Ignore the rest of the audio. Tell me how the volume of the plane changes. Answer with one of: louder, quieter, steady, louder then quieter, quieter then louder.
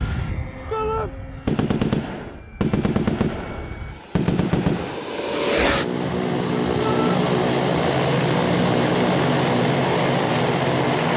louder.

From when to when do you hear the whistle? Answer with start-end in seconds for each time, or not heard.
not heard.